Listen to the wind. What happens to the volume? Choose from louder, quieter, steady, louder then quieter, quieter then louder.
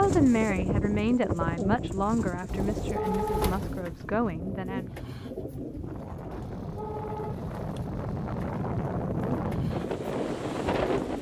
quieter then louder.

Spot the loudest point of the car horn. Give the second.
3 s.